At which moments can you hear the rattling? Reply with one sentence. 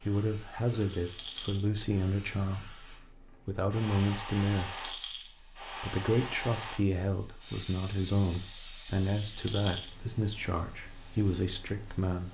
You can hear the rattling from 0.7 to 1.6 s, from 4.3 to 5.3 s and from 9.0 to 9.9 s.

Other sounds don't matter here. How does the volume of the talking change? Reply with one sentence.
The volume of the talking stays about the same.